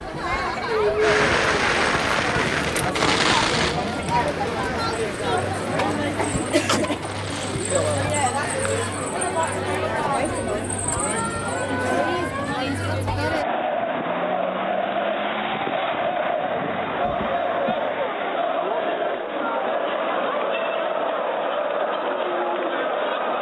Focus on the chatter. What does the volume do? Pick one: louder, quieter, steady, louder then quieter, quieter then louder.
steady.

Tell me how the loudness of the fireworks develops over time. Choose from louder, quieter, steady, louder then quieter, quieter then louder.
quieter.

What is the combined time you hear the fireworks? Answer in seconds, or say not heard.
8 s.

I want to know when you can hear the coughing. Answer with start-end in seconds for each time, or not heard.
6.2-6.8, 17.0-17.8.